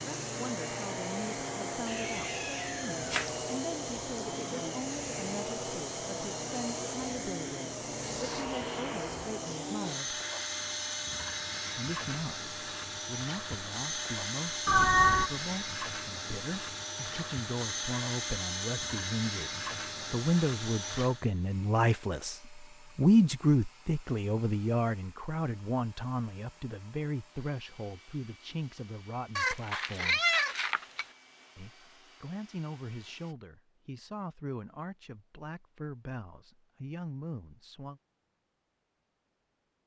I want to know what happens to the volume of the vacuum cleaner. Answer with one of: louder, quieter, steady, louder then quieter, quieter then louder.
quieter.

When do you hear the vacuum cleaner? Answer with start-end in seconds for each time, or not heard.
0.0-33.4.